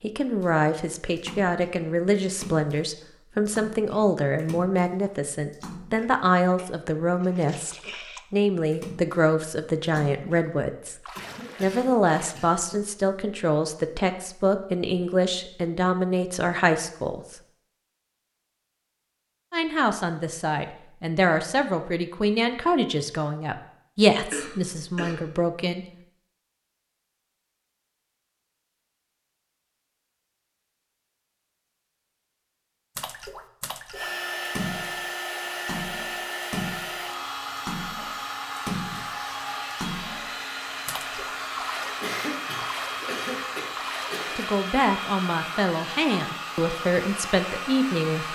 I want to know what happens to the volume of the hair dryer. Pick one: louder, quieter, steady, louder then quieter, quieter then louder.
steady.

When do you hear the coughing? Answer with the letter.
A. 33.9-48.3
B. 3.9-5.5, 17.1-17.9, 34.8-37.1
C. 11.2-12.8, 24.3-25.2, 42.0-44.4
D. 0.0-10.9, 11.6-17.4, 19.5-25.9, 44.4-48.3
C.